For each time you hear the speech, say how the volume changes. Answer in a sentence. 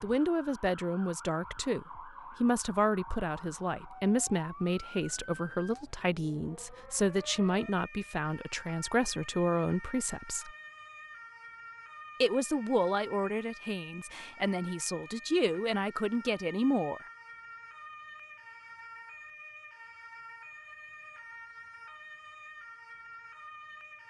The speech can be heard from 0.0 to 10.5 s, at a steady volume; and from 12.2 to 17.0 s, getting quieter then louder.